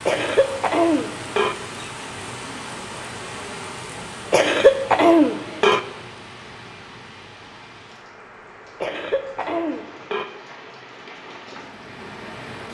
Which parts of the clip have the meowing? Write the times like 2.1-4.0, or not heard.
not heard.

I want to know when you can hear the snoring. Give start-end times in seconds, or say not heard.
not heard.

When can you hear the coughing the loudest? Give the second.
5 s.